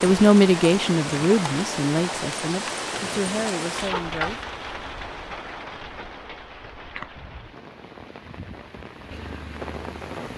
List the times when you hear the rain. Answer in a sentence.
You can hear the rain from 0.0 to 10.3 s.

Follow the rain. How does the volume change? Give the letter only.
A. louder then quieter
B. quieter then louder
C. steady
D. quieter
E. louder
D.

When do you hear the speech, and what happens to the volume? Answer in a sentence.
You can hear the speech from 0.0 to 4.5 s, getting quieter.